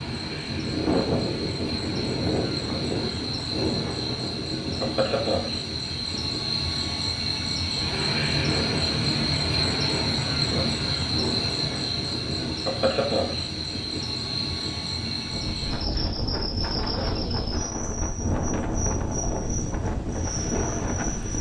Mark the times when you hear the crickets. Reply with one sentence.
The crickets can be heard from 0.0 to 21.3 s.